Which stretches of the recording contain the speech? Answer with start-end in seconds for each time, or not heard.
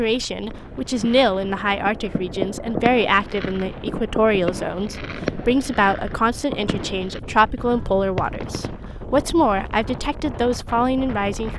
0.0-11.5.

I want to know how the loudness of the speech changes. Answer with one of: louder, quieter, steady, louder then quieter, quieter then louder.
steady.